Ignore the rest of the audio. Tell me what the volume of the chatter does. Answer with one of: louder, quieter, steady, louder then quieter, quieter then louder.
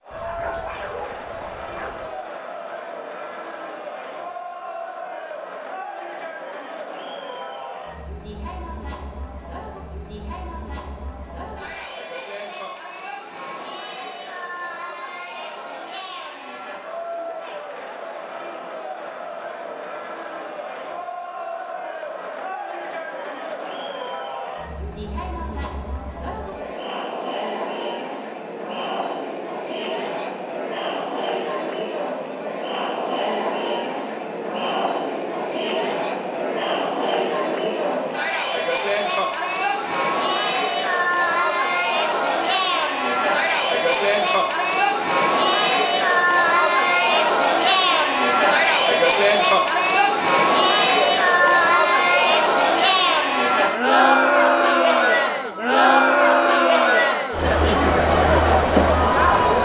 louder.